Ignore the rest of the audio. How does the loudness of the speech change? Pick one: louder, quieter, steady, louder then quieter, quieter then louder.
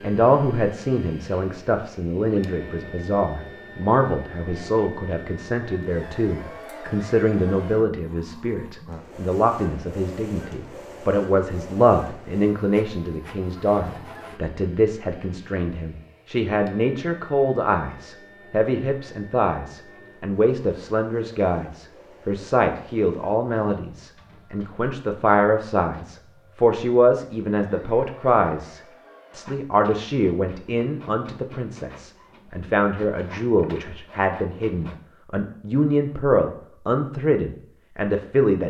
steady.